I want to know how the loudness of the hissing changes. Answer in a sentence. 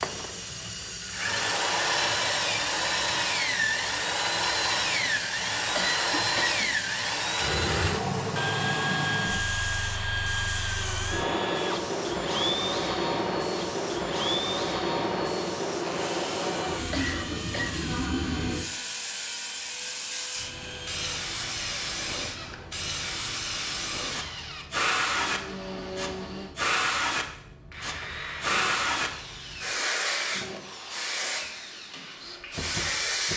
The volume of the hissing goes up.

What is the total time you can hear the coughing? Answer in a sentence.
The coughing can be heard for 2 seconds in total.